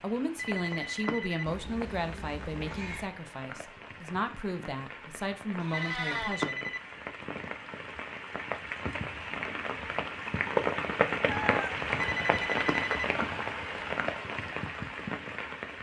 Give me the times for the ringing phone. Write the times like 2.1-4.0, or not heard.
0.3-1.4, 5.7-6.8, 11.9-13.1.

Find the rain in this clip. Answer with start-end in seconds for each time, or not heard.
0.0-15.7.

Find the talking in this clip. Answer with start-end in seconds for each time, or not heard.
0.0-6.6.